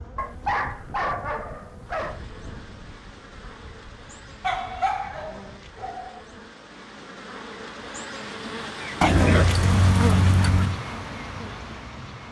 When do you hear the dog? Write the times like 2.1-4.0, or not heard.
0.1-2.2, 4.4-6.2, 9.0-10.8.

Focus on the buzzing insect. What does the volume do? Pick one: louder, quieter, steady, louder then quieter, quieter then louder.
louder.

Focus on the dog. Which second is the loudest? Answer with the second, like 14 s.
9 s.